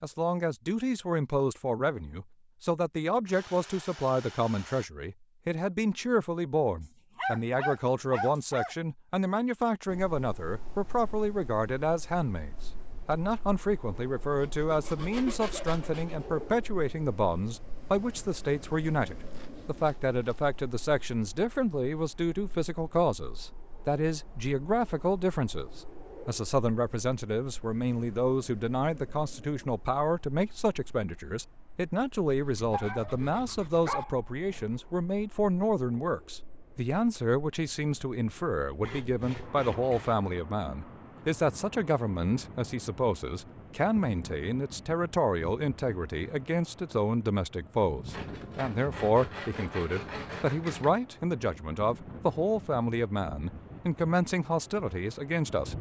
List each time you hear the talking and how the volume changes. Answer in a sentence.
You can hear the talking from 0.0 to 55.7 s, at a steady volume.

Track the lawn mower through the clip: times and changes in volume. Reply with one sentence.
The lawn mower can't be heard in this clip.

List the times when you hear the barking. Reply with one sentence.
The barking can be heard from 6.8 to 8.8 s and from 32.7 to 34.7 s.